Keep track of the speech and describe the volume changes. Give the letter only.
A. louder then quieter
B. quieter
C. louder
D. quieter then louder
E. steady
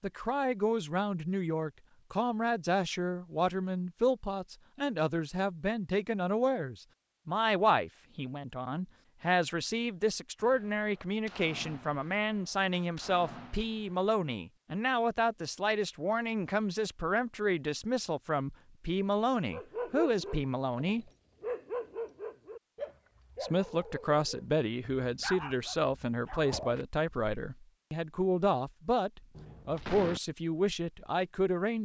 E.